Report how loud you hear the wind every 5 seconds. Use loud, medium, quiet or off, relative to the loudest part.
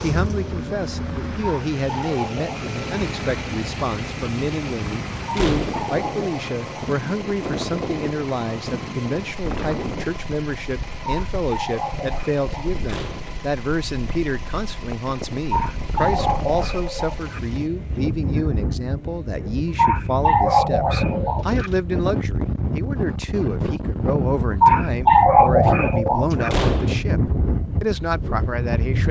medium, medium, quiet, medium, loud, loud.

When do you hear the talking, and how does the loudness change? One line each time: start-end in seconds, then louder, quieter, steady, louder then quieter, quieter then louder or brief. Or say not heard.
0.0-29.0 steady.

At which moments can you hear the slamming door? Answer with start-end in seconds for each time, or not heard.
5.3-5.8, 12.8-13.4, 26.5-27.1.